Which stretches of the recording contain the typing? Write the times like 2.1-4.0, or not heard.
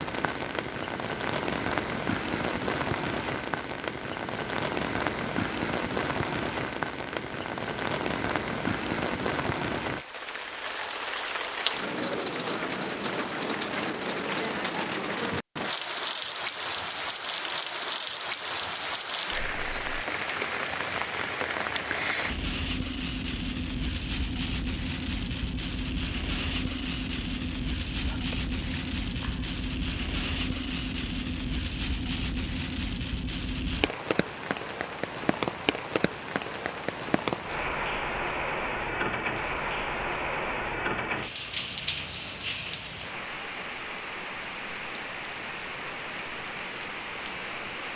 not heard.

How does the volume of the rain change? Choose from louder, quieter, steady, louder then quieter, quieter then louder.
steady.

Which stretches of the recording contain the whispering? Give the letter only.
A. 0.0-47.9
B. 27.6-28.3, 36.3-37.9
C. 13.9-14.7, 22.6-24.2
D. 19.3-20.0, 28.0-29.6
D.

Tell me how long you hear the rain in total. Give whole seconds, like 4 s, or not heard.
48 s.